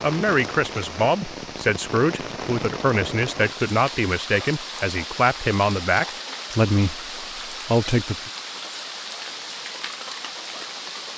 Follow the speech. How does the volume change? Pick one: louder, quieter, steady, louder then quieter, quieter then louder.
steady.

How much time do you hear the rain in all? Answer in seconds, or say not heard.
11 s.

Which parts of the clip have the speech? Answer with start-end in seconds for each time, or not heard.
0.0-8.3.